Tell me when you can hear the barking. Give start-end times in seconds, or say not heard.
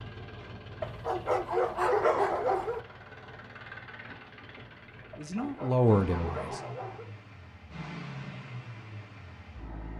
0.8-2.9, 5.1-7.1.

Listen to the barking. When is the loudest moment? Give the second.
2 s.